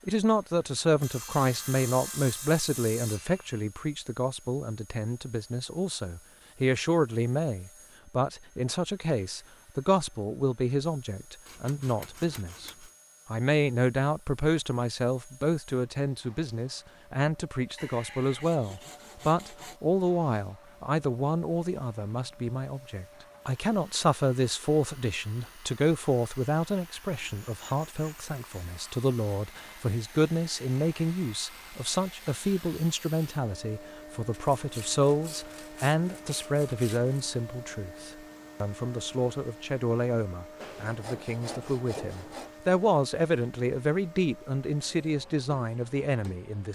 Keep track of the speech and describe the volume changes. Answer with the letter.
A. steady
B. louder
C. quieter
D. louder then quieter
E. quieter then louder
A.